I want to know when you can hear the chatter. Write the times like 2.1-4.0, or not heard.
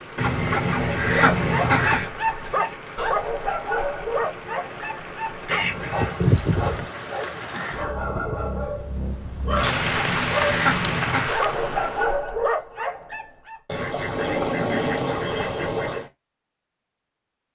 not heard.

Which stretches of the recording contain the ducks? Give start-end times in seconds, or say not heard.
0.1-2.1, 5.5-6.8, 9.6-11.3, 13.7-16.1.